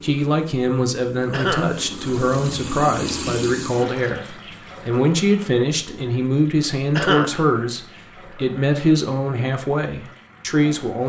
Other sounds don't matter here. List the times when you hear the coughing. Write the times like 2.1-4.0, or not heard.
1.3-1.8, 7.0-7.5.